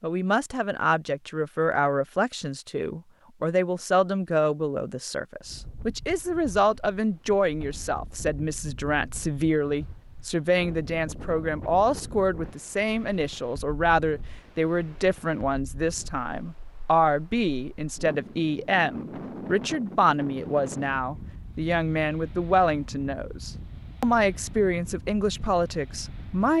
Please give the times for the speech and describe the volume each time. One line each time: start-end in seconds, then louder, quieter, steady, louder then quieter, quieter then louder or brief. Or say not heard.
0.0-26.5 steady.